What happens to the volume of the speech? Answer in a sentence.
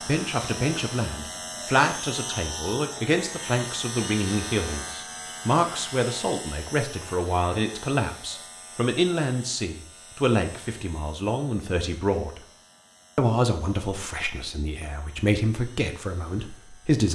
The volume of the speech stays about the same.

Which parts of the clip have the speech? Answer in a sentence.
The speech can be heard from 0.1 to 12.4 s and from 13.2 to 17.0 s.